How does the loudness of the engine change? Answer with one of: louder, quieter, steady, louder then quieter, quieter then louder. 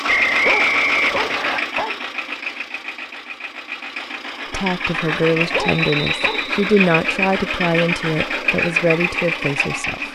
quieter then louder.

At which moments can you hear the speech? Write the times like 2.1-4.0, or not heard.
4.5-10.1.